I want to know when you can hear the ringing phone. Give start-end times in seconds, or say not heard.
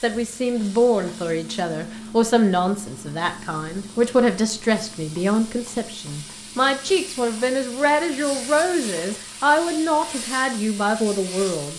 not heard.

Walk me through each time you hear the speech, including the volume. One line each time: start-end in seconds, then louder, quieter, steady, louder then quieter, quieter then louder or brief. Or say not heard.
0.0-11.7 steady.